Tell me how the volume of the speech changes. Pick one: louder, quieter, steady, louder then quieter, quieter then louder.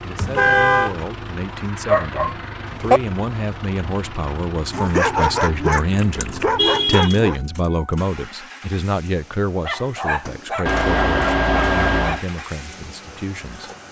louder then quieter.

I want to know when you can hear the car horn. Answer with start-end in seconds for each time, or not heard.
0.1-0.9, 6.5-7.2, 10.7-12.2.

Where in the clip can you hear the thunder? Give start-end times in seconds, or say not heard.
not heard.